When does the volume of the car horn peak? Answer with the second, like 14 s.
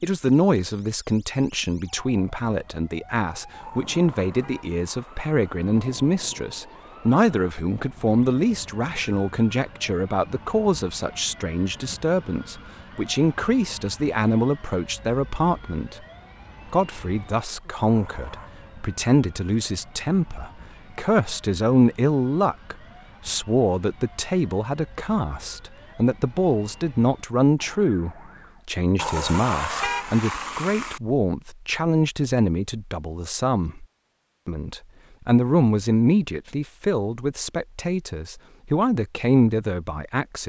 30 s.